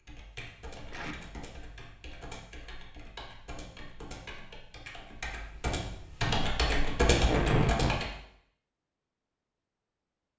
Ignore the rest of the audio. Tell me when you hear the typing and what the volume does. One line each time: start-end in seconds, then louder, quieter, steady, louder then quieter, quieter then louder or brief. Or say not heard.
0.0-8.1 louder.